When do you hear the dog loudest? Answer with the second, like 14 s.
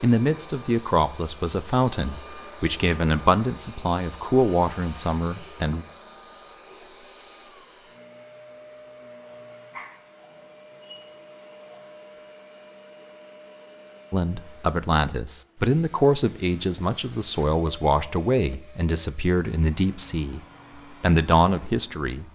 10 s.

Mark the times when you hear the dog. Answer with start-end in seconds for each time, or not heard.
9.2-11.9.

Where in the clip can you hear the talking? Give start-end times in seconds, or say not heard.
0.0-5.8, 14.1-20.4, 21.0-22.3.